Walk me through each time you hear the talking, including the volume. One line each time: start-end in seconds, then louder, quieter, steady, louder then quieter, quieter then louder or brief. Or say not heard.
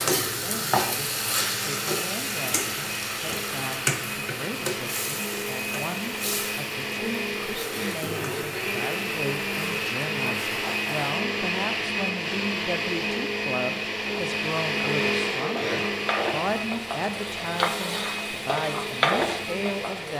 0.2-20.1 louder.